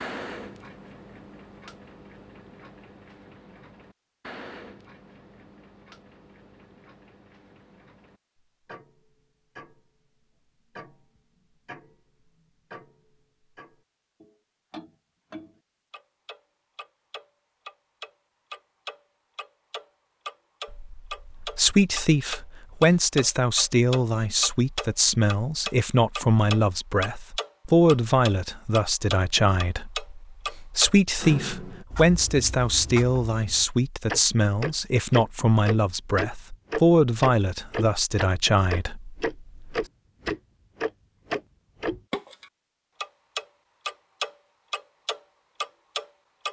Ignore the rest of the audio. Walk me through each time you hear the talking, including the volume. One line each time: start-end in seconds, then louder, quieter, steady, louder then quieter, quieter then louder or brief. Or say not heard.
20.7-39.9 steady.